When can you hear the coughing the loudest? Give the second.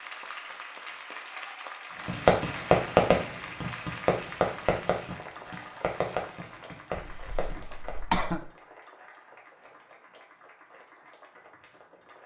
8 s.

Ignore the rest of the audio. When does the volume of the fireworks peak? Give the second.
3 s.